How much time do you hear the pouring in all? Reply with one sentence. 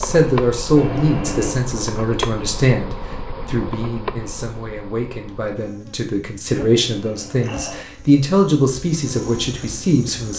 You can hear the pouring for 2 seconds altogether.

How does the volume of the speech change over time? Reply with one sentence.
The loudness of the speech goes down, then up.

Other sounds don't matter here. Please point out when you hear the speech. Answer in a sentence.
The speech can be heard from 0.0 to 10.3 s.